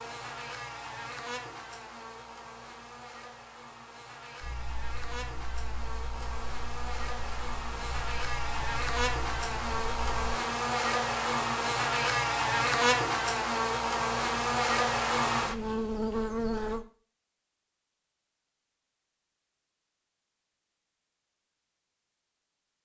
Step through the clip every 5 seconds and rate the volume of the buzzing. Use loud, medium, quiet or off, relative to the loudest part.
quiet, medium, loud, loud, off.